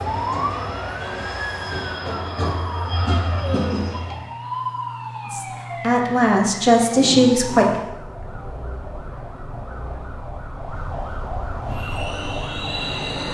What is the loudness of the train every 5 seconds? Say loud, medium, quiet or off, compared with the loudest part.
loud, off, loud.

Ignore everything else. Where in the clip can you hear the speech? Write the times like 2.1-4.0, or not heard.
5.2-7.7.